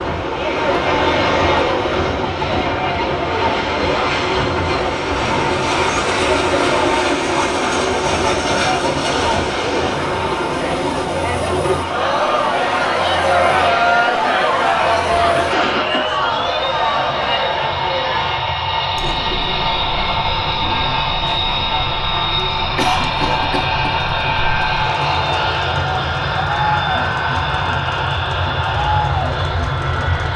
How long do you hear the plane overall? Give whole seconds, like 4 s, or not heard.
30 s.